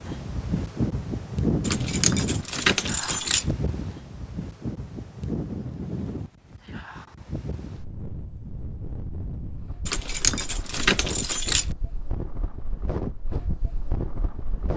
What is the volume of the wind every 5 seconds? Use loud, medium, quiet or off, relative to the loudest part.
loud, medium, medium.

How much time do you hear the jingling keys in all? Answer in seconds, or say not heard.
4 s.